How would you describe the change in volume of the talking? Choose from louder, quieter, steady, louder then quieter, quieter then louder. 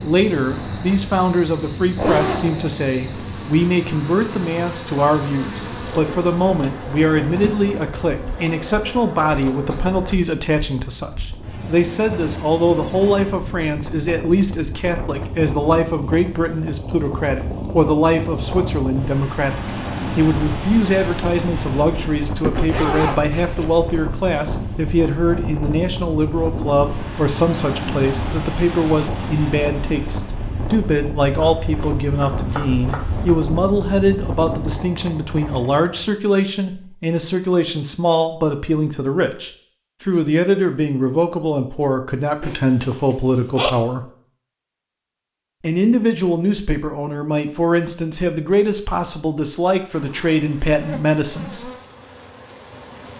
steady.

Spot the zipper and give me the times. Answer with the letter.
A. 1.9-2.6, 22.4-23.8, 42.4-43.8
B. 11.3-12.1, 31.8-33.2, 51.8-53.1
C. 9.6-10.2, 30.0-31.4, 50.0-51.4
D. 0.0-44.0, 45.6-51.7
A.